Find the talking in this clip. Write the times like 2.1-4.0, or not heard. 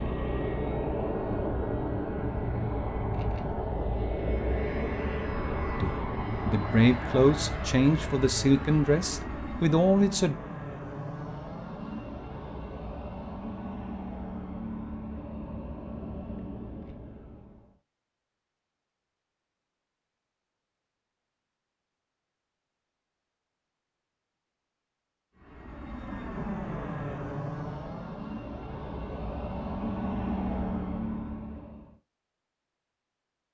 5.8-10.3.